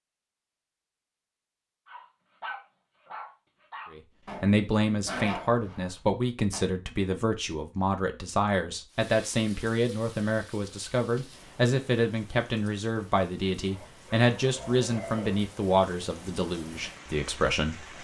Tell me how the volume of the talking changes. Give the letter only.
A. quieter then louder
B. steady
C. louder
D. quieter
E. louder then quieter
B.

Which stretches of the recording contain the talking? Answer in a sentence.
The talking can be heard from 3.9 to 17.9 s.